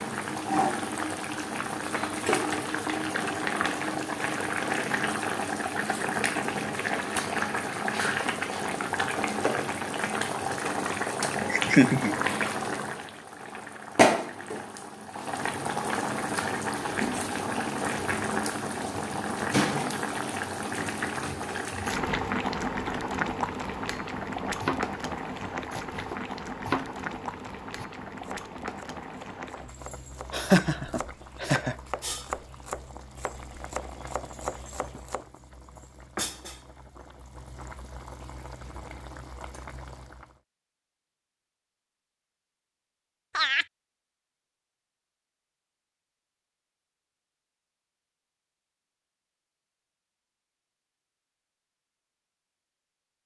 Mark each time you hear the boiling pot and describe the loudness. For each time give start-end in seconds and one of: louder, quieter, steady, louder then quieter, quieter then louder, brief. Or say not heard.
0.0-40.4 quieter.